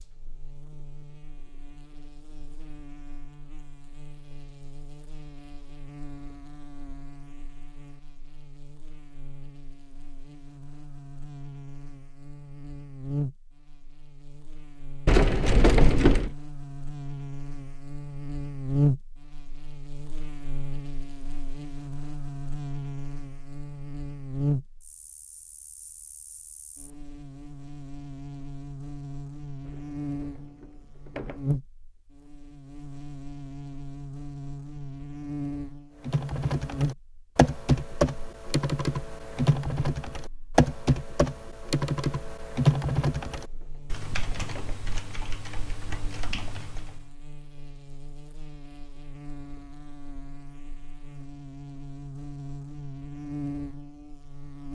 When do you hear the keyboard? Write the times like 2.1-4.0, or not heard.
36.0-47.0.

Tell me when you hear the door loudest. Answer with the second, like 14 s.
16 s.